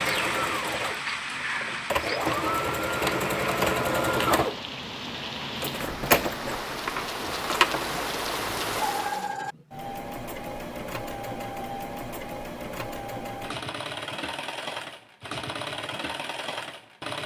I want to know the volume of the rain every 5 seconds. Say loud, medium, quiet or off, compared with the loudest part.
loud, loud, off, off.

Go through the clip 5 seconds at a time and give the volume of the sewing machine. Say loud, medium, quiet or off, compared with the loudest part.
loud, loud, medium, medium.